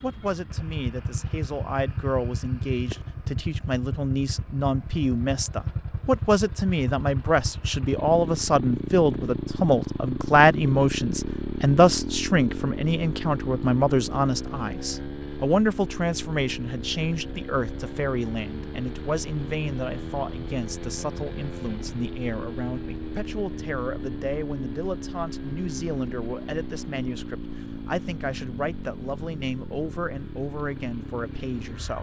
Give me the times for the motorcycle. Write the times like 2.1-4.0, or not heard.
0.0-31.9.